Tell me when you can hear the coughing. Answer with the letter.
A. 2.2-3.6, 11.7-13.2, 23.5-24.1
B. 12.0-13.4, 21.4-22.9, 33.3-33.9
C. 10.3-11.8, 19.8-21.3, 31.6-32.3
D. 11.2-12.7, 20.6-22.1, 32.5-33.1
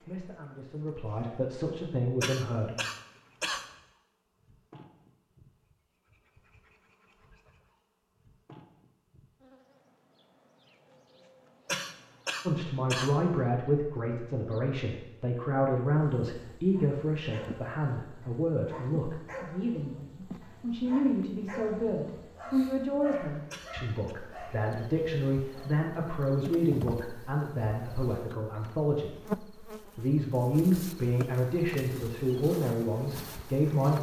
A.